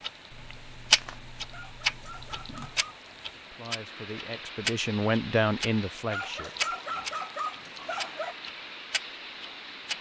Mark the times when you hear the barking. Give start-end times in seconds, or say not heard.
1.5-2.8, 6.0-8.3.